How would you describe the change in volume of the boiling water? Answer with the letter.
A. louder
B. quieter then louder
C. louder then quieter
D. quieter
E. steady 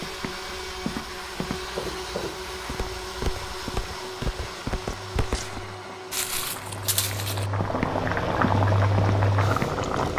A.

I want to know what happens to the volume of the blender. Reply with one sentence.
The volume of the blender goes down.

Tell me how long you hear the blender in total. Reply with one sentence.
You can hear the blender for 10 seconds altogether.